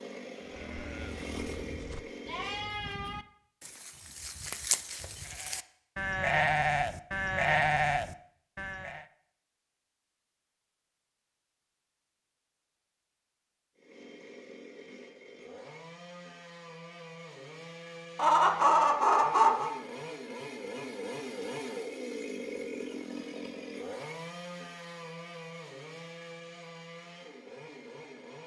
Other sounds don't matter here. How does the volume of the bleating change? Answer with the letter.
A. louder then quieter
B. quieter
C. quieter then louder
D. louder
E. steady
D.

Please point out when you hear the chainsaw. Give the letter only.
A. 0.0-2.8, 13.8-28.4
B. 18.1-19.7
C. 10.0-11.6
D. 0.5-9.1
A.